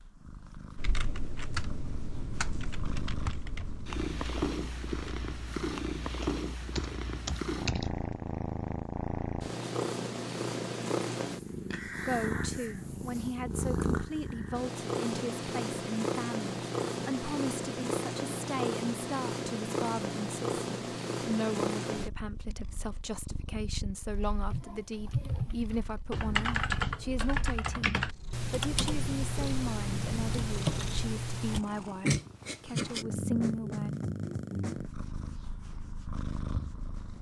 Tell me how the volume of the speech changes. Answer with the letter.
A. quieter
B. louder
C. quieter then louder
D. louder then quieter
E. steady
E.